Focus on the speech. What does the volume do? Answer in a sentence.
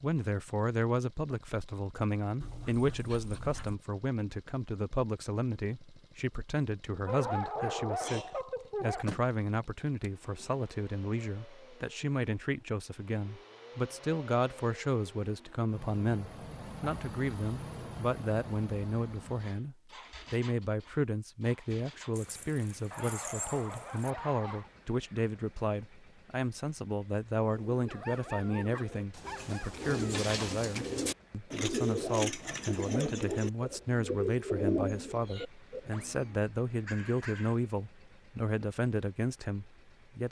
The volume of the speech stays about the same.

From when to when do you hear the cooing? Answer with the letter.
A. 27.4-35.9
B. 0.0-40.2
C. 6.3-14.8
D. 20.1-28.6
A.